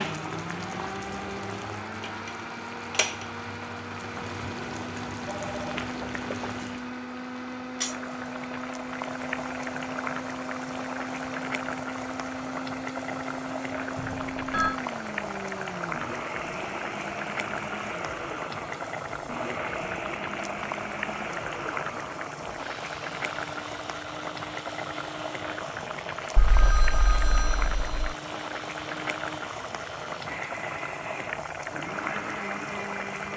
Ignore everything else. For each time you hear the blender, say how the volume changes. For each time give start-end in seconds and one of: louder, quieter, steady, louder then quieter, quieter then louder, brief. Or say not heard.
0.0-33.3 steady.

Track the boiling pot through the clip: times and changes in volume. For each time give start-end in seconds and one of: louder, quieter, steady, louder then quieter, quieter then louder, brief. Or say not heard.
0.0-33.3 steady.